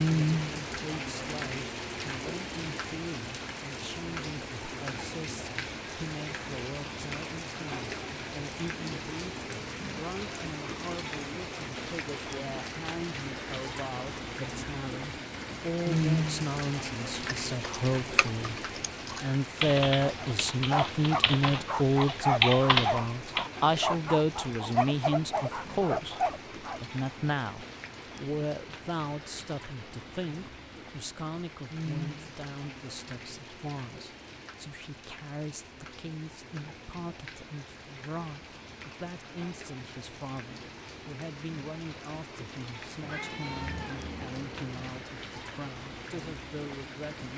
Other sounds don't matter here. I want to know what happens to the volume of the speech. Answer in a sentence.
The loudness of the speech goes up, then down.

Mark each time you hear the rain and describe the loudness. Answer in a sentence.
You can hear the rain from 0.0 to 47.3 s, getting quieter.